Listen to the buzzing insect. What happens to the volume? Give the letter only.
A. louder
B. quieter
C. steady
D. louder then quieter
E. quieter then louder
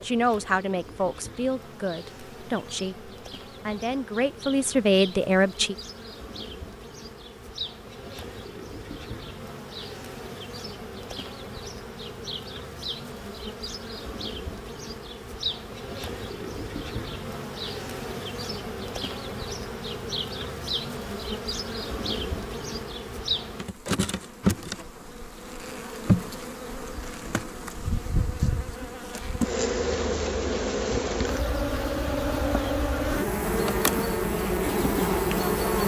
A.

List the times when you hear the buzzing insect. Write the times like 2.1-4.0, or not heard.
0.0-35.8.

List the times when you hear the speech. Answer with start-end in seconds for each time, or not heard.
0.0-5.8.